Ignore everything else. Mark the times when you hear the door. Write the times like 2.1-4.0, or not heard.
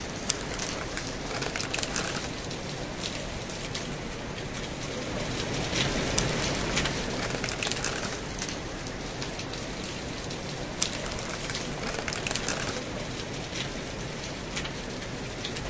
not heard.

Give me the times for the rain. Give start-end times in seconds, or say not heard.
0.0-15.6.